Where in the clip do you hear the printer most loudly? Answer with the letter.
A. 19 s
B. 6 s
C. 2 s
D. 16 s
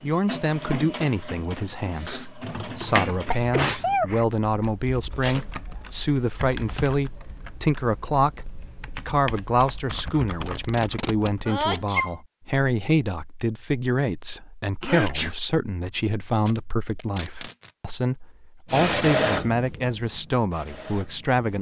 A.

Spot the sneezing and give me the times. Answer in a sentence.
You can hear the sneezing from 2.4 to 4.2 s, from 11.4 to 12.2 s and from 14.8 to 15.3 s.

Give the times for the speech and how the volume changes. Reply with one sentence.
You can hear the speech from 0.0 to 21.5 s, at a steady volume.